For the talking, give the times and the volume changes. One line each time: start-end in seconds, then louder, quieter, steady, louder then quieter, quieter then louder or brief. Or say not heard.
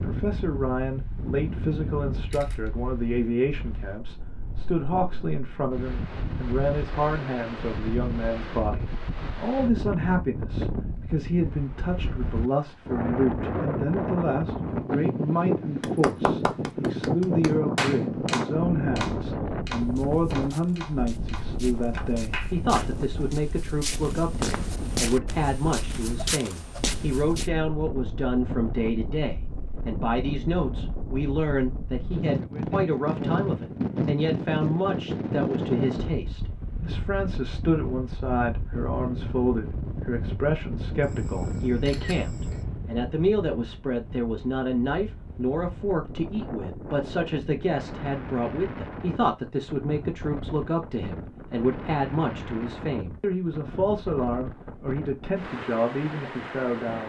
0.0-57.0 steady.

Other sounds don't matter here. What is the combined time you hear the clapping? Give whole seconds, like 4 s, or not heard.
7 s.